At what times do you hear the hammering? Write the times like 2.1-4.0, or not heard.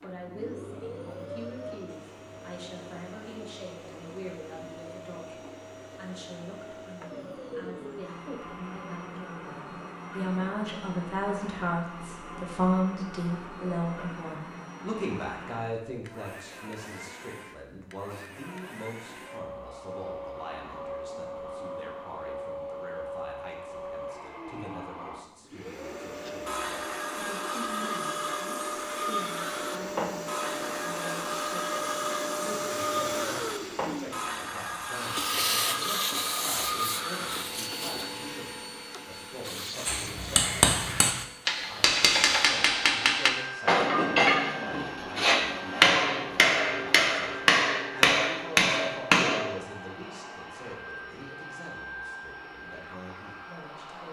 39.9-49.5.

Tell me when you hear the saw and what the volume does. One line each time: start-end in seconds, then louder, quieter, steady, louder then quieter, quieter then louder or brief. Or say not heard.
26.1-37.5 steady.